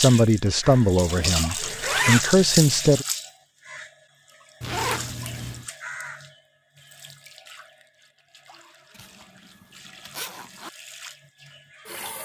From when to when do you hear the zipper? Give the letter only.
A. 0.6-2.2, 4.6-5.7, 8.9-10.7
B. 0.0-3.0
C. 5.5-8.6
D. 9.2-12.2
A.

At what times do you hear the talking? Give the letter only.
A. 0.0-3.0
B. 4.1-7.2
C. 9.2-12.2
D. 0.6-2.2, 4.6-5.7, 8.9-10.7
A.